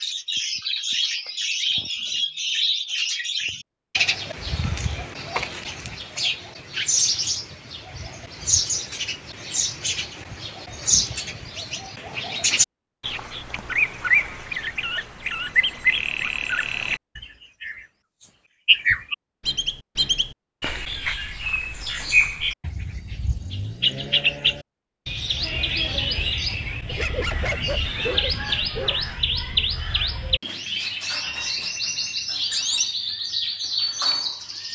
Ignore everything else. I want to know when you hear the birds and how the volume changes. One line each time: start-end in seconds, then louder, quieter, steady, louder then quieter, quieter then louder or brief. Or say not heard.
0.0-34.6 steady.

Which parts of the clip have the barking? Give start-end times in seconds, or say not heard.
26.9-29.6.